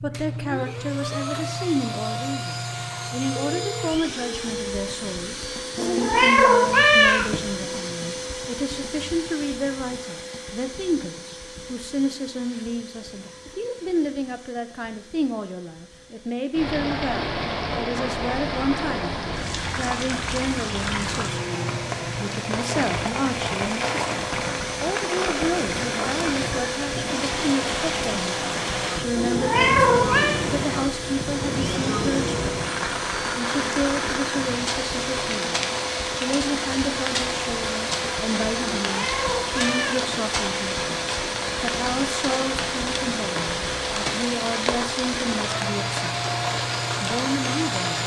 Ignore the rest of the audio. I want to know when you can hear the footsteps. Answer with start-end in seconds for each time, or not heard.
not heard.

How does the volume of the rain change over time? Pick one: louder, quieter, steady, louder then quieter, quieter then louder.
steady.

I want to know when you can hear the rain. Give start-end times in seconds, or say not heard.
16.5-48.0.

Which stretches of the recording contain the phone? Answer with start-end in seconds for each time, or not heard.
3.4-4.0.